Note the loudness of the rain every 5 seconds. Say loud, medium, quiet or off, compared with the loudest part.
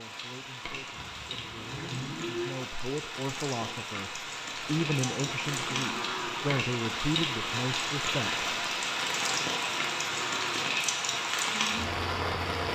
medium, loud, loud.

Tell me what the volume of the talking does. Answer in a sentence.
The volume of the talking goes up.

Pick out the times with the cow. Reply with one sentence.
The cow can be heard from 0.9 to 2.5 s, from 4.6 to 6.5 s and from 9.1 to 10.7 s.